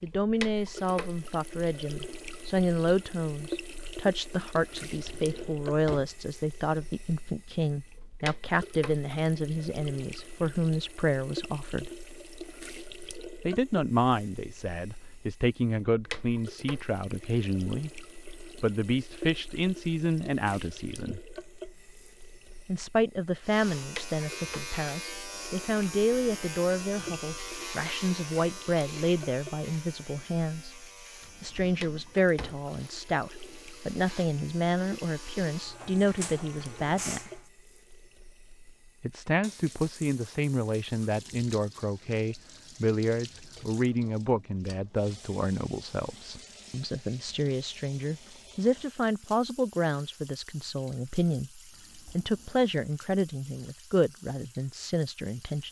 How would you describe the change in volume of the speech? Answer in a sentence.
The volume of the speech stays about the same.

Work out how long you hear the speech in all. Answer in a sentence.
The speech can be heard for 50 seconds in total.